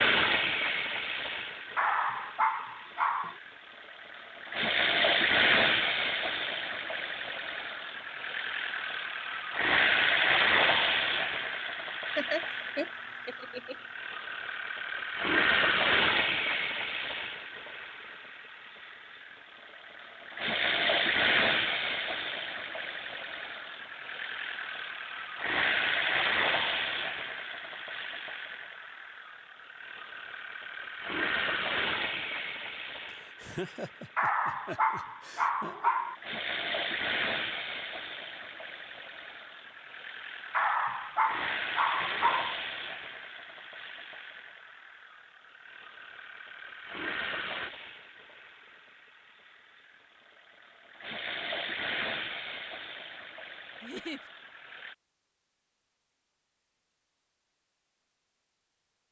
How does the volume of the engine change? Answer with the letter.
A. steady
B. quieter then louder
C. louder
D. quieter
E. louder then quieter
D.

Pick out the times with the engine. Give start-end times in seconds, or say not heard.
0.0-55.0.